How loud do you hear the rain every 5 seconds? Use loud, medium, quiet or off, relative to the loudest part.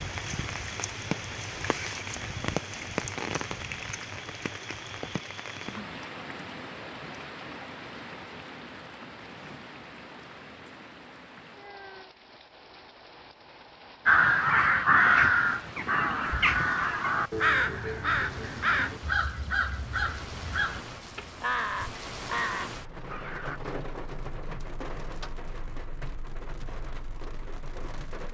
loud, medium, quiet, quiet, medium, medium.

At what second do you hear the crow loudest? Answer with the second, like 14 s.
15 s.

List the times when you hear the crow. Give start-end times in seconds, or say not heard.
14.1-23.6.